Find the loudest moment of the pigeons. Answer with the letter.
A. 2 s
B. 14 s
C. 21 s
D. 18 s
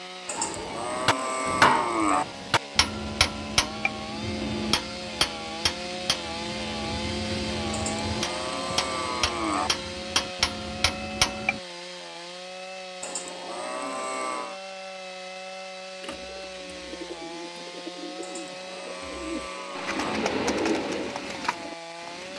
C.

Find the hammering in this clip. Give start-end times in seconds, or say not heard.
0.3-11.6.